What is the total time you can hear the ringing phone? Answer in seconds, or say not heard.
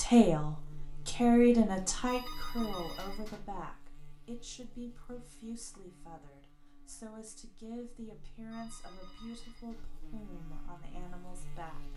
3 s.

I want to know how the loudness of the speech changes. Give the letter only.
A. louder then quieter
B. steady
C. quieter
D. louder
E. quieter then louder
C.